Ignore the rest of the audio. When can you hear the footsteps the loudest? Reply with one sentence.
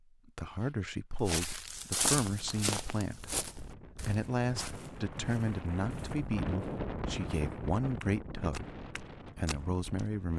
The volume of the footsteps peaks at 2 seconds.